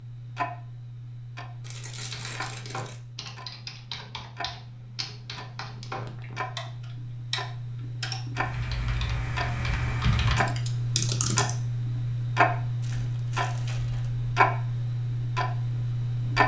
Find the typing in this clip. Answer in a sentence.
The typing can be heard from 1.9 to 11.6 s.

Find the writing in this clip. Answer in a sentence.
The writing can't be heard in this clip.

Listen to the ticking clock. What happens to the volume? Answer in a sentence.
The loudness of the ticking clock goes up.